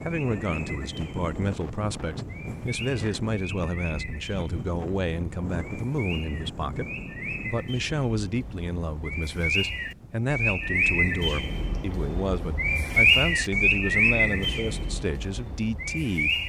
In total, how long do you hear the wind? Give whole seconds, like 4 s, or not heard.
10 s.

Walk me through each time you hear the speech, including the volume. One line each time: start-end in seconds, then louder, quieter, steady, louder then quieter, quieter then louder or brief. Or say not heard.
0.0-16.4 steady.